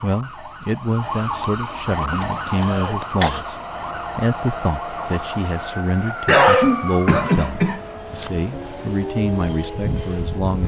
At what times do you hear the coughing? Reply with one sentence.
You can hear the coughing from 2.0 to 3.4 s and from 6.2 to 8.3 s.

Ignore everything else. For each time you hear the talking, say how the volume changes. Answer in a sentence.
You can hear the talking from 0.0 to 10.6 s, at a steady volume.